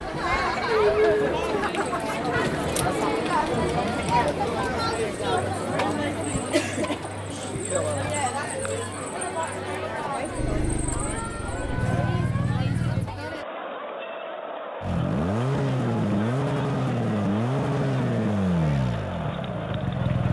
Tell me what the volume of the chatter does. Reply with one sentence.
The loudness of the chatter goes down.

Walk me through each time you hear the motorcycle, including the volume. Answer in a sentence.
You can hear the motorcycle briefly from 10.3 to 13.1 s; and from 14.8 to 20.2 s, getting quieter.